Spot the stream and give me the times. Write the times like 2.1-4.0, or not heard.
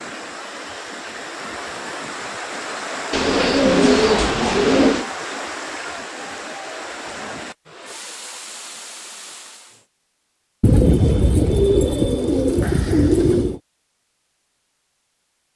0.0-9.8.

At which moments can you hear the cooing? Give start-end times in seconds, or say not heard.
3.1-5.0, 10.6-13.6.